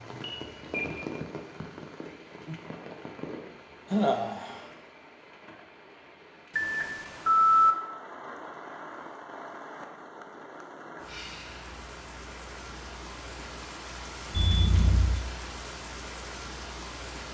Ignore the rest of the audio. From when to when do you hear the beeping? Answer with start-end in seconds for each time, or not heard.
0.2-1.1, 6.5-7.8, 14.3-15.2.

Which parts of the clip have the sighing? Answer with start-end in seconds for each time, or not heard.
3.9-4.7, 11.1-11.7.